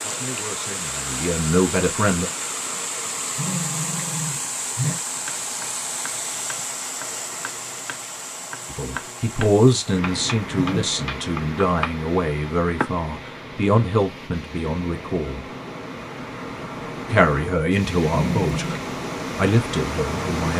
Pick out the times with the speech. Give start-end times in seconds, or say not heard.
0.0-2.3, 8.7-15.4, 17.1-20.5.